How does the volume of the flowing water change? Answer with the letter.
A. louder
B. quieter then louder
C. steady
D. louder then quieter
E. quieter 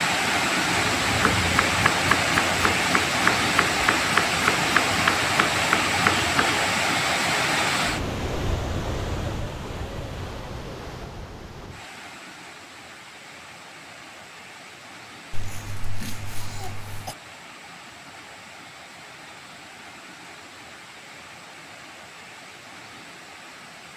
E.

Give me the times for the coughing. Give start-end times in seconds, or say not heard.
15.3-17.1.